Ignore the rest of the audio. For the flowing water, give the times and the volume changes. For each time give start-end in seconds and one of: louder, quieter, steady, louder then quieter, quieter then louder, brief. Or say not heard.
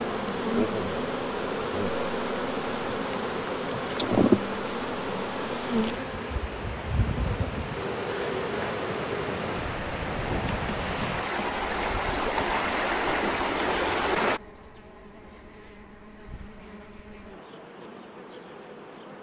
0.0-14.4 louder.